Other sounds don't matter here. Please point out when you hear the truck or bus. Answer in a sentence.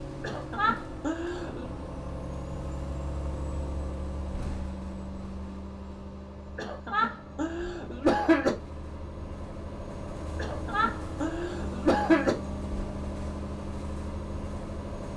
The truck or bus can be heard from 0.0 to 15.1 s.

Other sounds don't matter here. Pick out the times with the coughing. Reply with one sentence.
The coughing can be heard from 0.2 to 1.6 s, from 6.5 to 8.5 s and from 10.3 to 12.3 s.